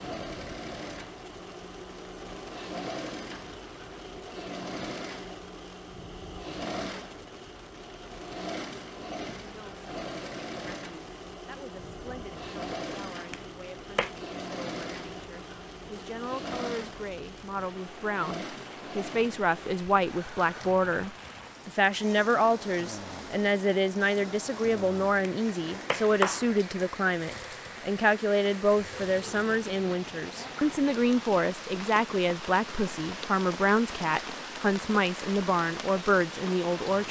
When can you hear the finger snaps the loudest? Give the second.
26 s.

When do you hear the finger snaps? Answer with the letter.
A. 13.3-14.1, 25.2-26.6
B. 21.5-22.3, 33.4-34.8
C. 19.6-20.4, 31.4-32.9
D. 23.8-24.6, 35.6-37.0
A.